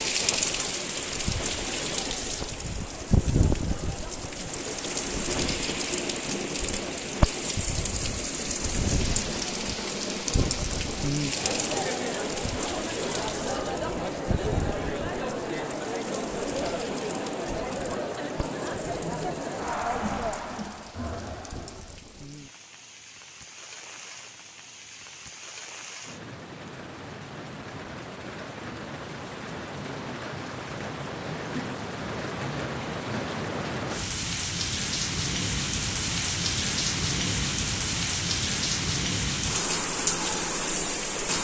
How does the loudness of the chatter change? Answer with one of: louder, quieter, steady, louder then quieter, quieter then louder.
louder.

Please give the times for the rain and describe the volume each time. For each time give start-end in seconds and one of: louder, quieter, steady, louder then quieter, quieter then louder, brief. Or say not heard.
0.0-41.3 quieter then louder.